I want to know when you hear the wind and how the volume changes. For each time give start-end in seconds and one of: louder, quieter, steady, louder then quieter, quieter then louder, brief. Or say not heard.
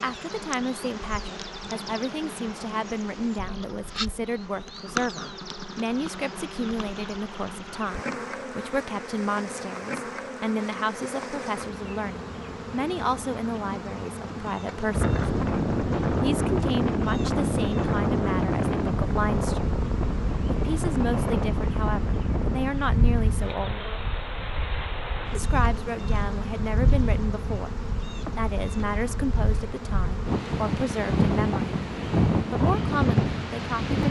14.9-34.0 quieter then louder.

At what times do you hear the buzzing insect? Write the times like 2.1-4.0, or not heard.
0.0-33.9.